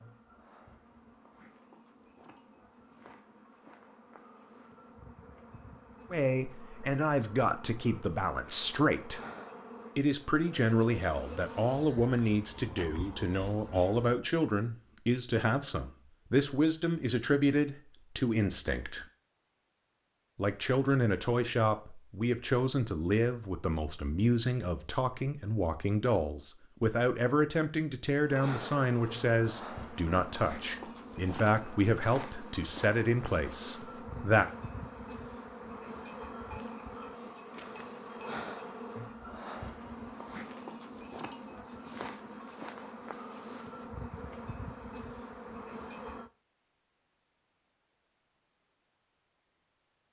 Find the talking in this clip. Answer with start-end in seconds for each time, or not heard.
6.1-9.2, 9.9-19.1, 20.4-34.5.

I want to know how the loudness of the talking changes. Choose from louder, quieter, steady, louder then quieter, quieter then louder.
steady.